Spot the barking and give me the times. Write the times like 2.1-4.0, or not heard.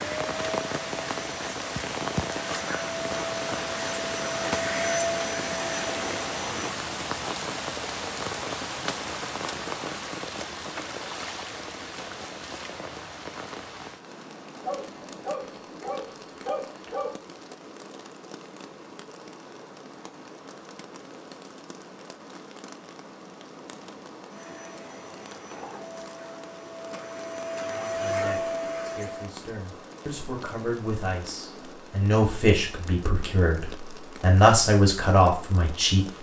14.6-17.2.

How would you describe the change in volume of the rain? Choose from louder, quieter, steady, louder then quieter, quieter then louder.
quieter.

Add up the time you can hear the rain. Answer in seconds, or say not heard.
36 s.